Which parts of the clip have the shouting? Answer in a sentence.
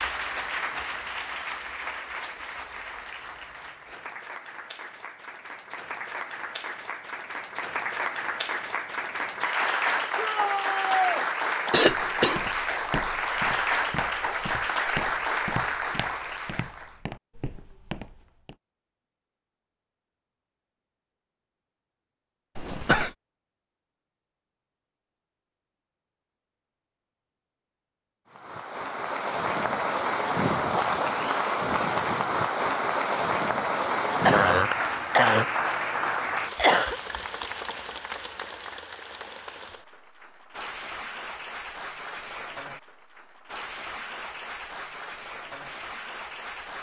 The shouting can be heard from 10.2 to 11.2 s.